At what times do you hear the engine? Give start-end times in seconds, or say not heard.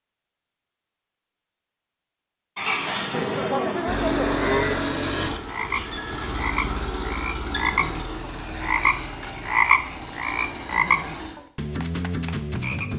2.5-11.3.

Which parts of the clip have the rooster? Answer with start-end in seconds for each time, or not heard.
not heard.